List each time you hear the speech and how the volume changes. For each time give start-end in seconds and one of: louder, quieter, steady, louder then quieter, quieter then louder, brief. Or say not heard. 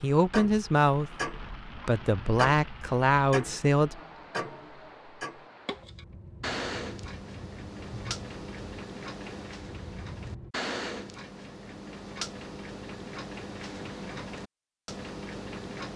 0.0-4.0 quieter then louder.